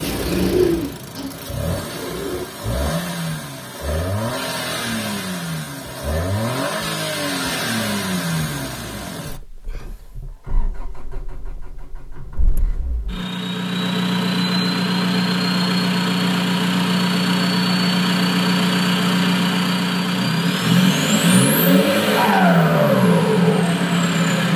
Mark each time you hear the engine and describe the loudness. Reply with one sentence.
You can hear the engine from 0.0 to 24.5 s, getting louder.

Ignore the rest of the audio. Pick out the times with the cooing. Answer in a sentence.
You can hear the cooing from 0.0 to 2.5 s.